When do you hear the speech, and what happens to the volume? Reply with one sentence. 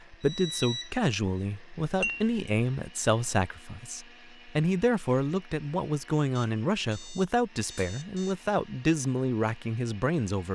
The speech can be heard from 0.1 to 10.5 s, at a steady volume.